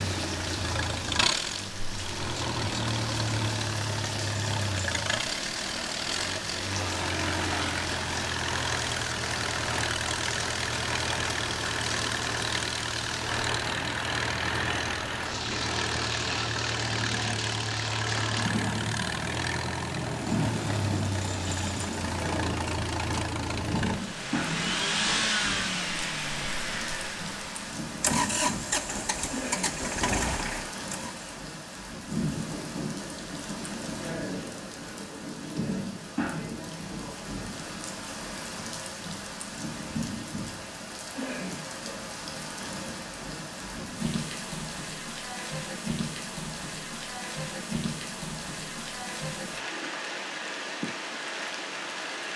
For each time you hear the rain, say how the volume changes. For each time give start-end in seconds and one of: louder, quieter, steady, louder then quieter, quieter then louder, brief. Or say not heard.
0.0-52.3 steady.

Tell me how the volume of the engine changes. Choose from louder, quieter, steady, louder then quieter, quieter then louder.
steady.